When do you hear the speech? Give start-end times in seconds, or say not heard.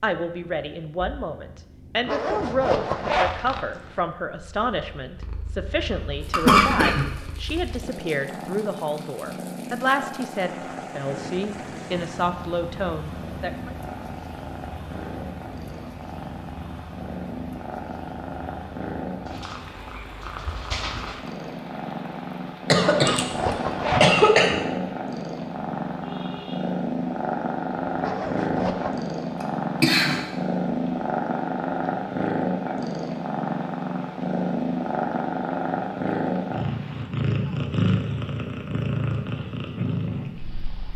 0.0-13.8.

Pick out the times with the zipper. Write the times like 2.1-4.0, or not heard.
2.0-4.0, 22.9-24.2, 27.9-28.9.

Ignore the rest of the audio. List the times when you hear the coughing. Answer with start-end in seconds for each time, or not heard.
6.3-7.0, 22.7-24.6, 29.8-30.2.